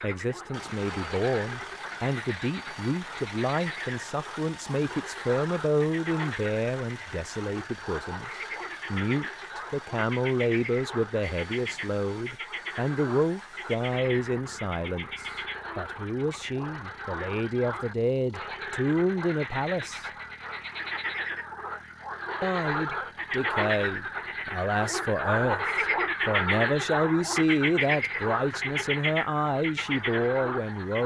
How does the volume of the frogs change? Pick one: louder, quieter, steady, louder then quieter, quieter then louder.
louder.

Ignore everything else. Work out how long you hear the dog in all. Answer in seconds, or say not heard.
not heard.